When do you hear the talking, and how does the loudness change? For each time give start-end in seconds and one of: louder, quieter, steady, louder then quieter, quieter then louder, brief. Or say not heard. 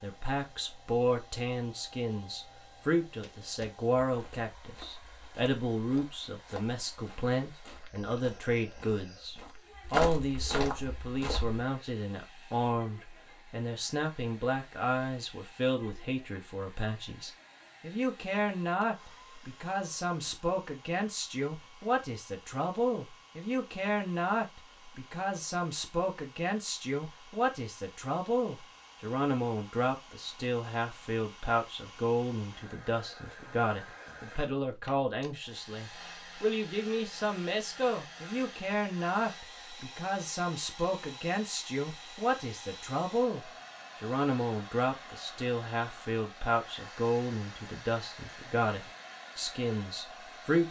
0.0-50.6 steady.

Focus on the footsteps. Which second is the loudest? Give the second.
10 s.